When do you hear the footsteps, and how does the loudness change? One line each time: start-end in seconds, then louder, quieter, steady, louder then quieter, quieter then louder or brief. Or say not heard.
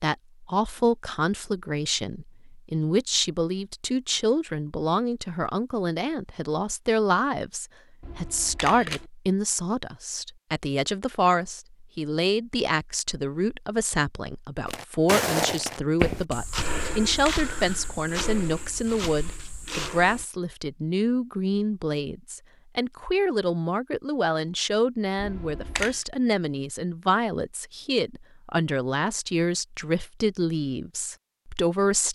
14.7-20.2 quieter.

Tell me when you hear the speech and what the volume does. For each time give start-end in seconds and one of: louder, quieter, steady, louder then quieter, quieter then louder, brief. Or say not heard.
0.0-32.1 steady.